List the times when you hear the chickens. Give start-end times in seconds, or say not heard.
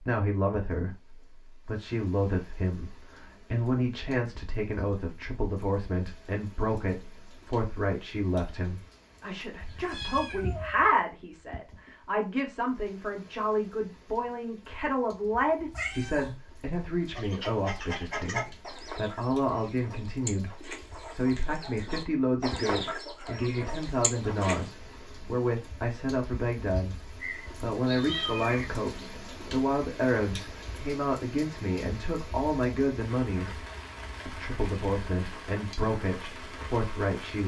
17.1-24.7.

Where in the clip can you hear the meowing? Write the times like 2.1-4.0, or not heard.
9.6-10.9, 15.7-16.4, 27.2-28.6.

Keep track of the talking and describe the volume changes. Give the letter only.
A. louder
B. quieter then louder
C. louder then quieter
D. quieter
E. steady
E.